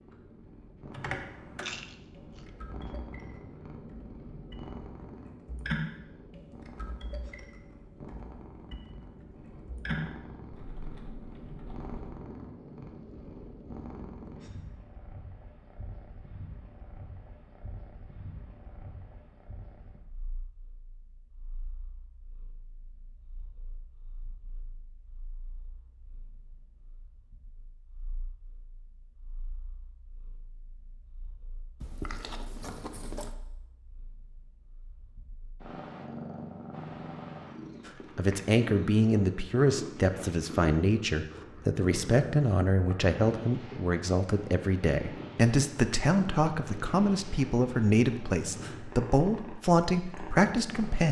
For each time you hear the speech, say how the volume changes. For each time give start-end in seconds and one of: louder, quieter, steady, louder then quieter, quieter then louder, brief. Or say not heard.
37.9-51.0 steady.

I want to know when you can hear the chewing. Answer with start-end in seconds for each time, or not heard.
1.6-2.5, 31.8-33.4.